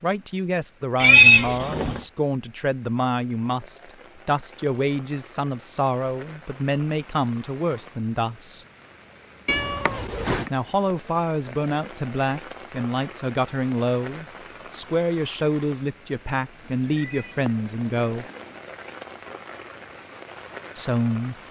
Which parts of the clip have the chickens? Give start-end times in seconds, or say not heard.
not heard.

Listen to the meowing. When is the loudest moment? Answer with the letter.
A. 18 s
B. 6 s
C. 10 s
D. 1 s
D.